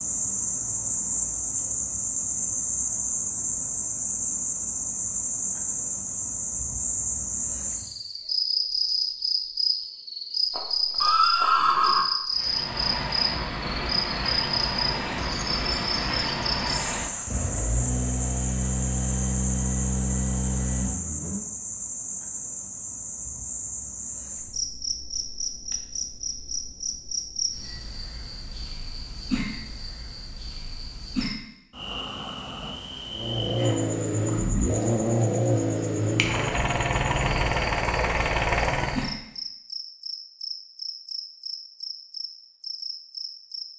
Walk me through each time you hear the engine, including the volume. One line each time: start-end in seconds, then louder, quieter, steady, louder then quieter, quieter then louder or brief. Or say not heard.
12.3-21.5 steady
33.1-39.1 steady.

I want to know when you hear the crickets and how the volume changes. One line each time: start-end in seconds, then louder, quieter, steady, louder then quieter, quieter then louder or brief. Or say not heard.
0.0-43.6 quieter.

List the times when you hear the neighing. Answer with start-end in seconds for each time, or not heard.
10.5-12.1.